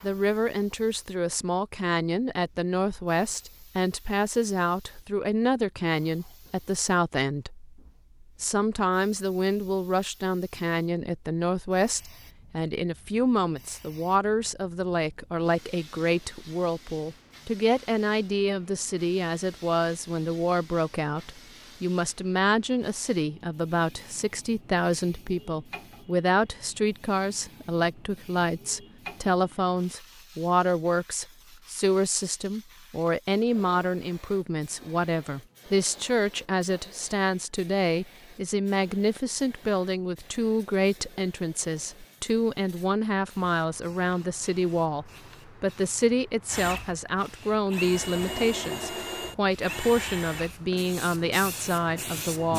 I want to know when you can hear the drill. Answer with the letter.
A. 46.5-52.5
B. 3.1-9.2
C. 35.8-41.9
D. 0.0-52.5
A.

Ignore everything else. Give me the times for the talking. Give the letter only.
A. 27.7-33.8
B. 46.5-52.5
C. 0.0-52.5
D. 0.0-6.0
C.